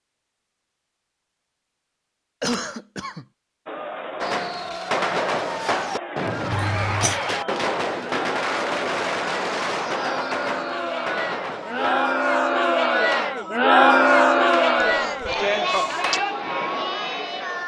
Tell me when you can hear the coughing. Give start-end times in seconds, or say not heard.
2.4-3.2, 6.5-7.2, 14.8-16.2.